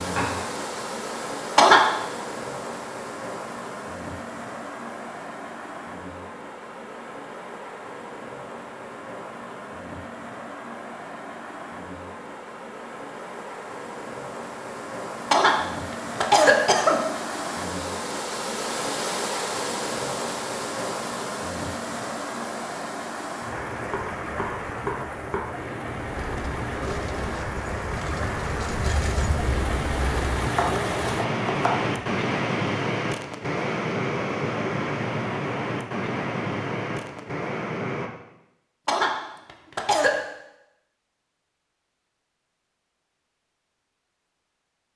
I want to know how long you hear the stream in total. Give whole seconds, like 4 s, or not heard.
38 s.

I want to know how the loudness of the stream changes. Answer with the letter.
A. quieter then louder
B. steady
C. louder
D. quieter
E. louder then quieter
C.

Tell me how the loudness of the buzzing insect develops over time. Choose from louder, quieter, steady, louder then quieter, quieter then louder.
louder.